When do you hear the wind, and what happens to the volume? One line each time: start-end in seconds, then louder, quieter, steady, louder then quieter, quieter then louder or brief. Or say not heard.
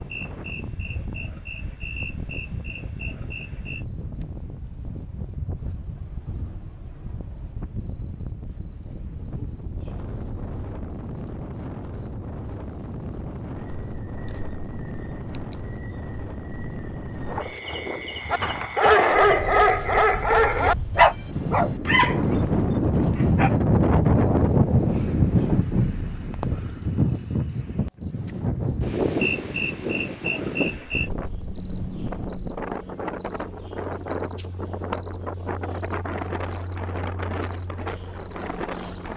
0.0-39.1 louder then quieter.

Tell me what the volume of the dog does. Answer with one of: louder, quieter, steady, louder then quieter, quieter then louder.
quieter.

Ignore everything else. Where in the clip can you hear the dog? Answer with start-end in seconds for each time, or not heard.
18.3-23.5.